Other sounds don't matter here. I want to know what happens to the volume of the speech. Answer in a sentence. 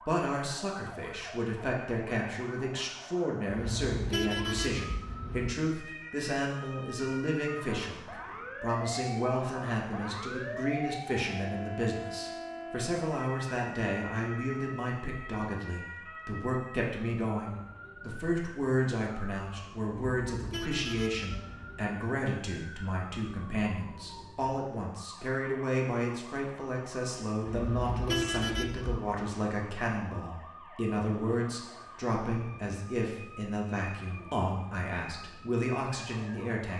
The loudness of the speech stays about the same.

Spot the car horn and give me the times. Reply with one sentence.
You can hear the car horn from 3.5 to 5.5 s, from 19.9 to 21.9 s and from 27.4 to 29.1 s.